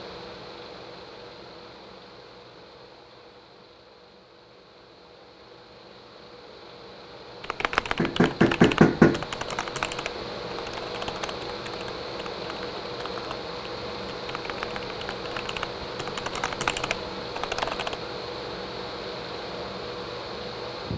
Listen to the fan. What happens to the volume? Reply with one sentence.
The loudness of the fan goes up.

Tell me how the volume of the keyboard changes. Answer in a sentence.
The loudness of the keyboard goes down, then up.